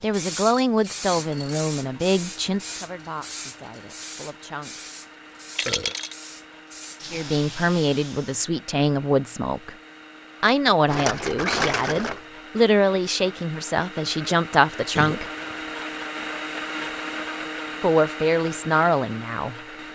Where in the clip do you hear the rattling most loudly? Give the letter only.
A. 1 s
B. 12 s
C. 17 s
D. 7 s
B.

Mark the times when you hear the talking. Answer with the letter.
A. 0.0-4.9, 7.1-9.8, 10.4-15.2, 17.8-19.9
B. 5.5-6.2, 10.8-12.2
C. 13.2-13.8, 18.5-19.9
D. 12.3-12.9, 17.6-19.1
A.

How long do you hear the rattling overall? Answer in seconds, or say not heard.
2 s.